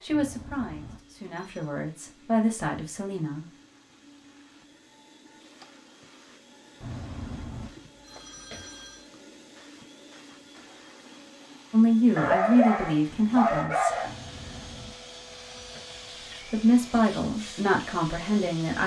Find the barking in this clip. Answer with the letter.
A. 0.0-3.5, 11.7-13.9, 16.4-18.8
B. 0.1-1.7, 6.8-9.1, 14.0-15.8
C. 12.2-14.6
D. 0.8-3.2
C.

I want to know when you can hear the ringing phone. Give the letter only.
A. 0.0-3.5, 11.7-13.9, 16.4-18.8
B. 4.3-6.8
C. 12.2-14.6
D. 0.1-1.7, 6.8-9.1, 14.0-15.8
D.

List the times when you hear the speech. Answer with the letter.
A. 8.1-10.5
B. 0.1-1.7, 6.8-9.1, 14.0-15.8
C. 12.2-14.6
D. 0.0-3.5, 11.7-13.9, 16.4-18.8
D.